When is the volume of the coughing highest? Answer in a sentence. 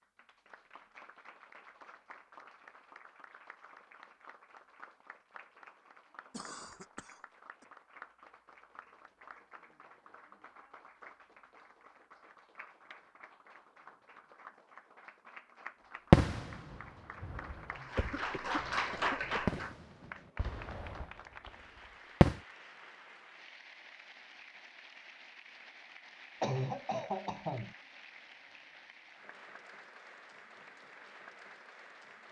The loudest moment of the coughing is at 27 seconds.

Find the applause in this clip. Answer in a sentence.
The applause can be heard from 0.0 to 32.2 s.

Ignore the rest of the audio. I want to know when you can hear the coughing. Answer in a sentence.
The coughing can be heard from 6.3 to 7.7 s, from 17.9 to 19.6 s and from 26.4 to 27.8 s.